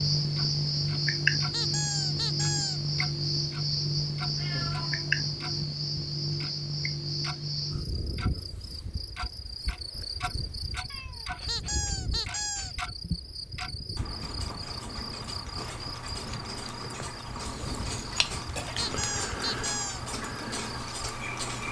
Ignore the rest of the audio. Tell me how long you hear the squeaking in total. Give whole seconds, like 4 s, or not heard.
4 s.